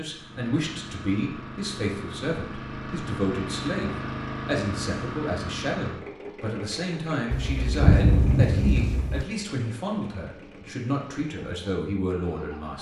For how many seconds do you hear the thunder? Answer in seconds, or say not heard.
2 s.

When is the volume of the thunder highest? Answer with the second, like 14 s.
8 s.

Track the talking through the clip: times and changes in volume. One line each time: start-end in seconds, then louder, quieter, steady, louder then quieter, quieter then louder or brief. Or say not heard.
0.0-12.7 steady.